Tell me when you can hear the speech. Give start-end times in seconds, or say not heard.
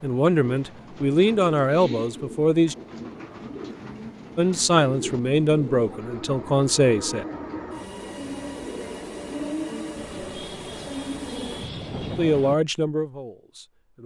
0.0-2.8, 4.3-7.2, 12.2-14.0.